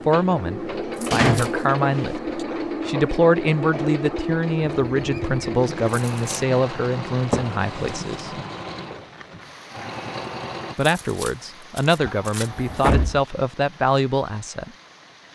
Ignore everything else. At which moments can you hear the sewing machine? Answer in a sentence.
The sewing machine can be heard from 0.0 to 10.8 s.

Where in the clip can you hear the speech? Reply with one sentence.
The speech can be heard from 0.1 to 8.3 s and from 10.8 to 14.7 s.